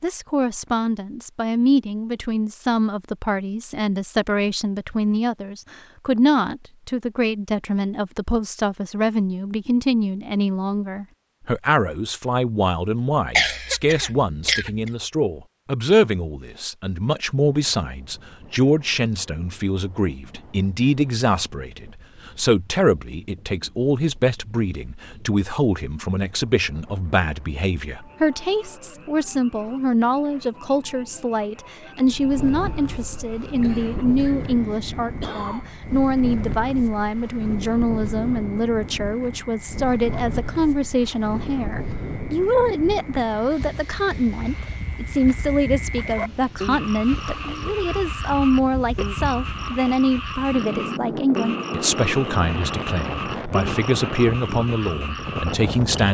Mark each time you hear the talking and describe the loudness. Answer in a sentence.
You can hear the talking from 0.0 to 56.0 s, at a steady volume.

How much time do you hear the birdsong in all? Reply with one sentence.
The birdsong can't be heard in this clip.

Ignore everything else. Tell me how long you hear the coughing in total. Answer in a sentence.
The coughing can be heard for 4 seconds in total.